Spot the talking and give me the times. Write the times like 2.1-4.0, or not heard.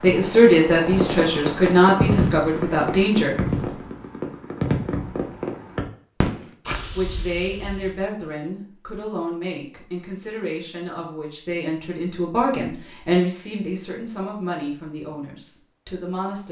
0.0-3.4, 6.9-16.4.